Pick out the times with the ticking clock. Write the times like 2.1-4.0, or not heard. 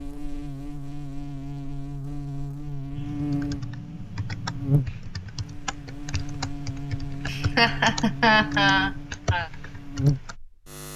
not heard.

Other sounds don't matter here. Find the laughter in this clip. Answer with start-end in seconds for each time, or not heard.
7.2-9.5.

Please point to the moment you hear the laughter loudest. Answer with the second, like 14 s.
8 s.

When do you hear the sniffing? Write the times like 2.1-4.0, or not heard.
not heard.